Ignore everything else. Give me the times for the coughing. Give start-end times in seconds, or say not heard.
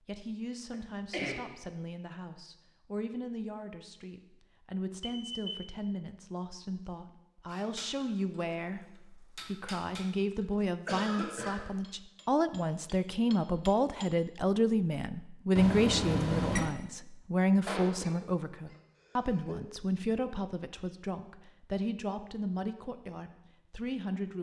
0.7-1.4, 10.8-11.7, 17.6-19.6.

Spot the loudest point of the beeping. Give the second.
16 s.